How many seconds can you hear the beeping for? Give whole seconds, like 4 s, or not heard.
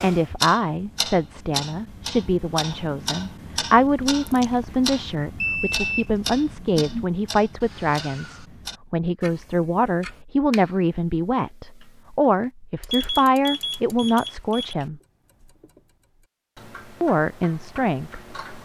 4 s.